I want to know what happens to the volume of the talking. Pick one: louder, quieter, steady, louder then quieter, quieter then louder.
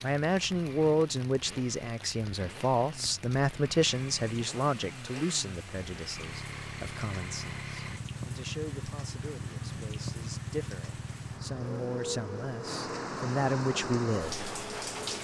quieter then louder.